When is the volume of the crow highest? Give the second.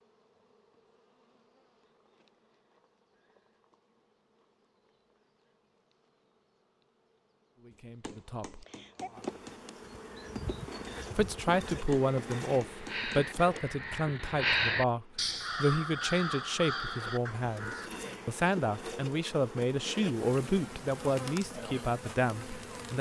15 s.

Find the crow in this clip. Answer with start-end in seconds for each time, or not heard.
9.8-18.0.